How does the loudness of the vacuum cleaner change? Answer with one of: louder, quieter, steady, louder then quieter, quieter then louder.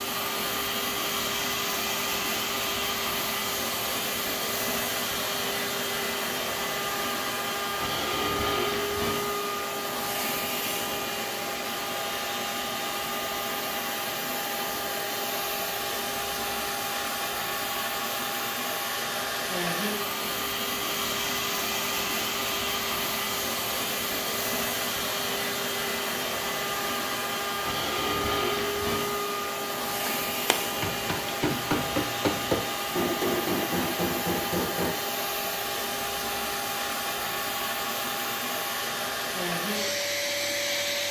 steady.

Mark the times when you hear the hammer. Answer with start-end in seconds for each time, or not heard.
30.1-35.0.